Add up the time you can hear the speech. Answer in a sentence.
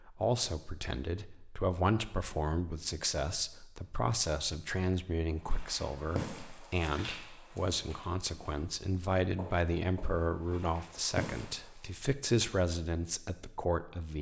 The speech can be heard for 14 seconds in total.